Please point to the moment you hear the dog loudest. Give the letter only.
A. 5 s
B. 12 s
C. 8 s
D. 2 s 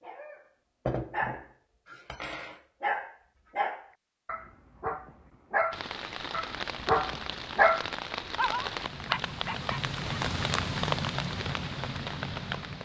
C.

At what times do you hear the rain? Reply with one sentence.
You can hear the rain from 5.7 to 12.7 s.